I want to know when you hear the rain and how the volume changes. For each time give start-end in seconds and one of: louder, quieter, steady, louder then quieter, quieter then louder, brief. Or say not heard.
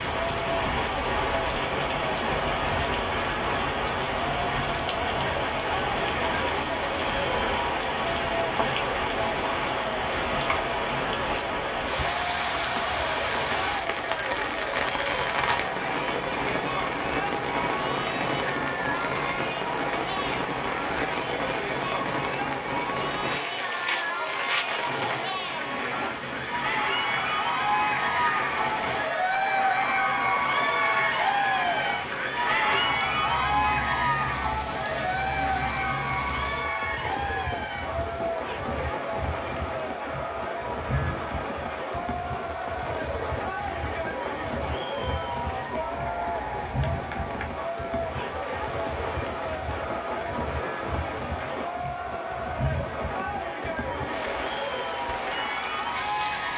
0.0-56.5 quieter.